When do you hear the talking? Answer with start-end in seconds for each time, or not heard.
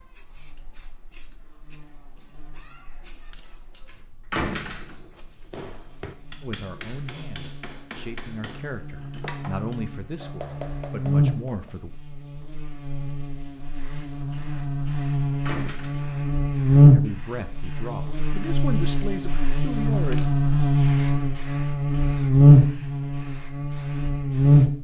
6.4-11.9, 16.9-20.2.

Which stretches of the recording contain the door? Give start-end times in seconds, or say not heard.
4.3-5.1, 15.4-16.2.